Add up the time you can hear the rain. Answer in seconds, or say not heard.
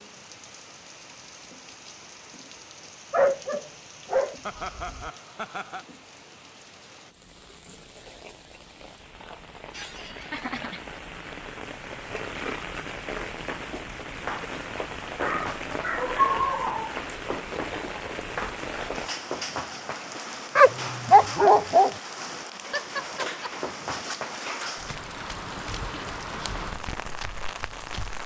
28 s.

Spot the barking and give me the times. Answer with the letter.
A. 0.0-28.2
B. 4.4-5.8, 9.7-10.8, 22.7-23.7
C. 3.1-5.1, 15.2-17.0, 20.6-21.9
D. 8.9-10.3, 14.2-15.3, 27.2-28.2
C.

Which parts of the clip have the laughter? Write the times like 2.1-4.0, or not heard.
4.4-5.8, 9.7-10.8, 22.7-23.7.